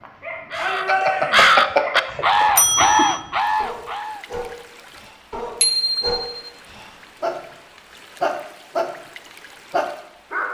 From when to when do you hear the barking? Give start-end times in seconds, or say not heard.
0.0-8.9, 9.7-10.4.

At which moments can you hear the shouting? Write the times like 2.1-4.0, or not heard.
0.6-1.6.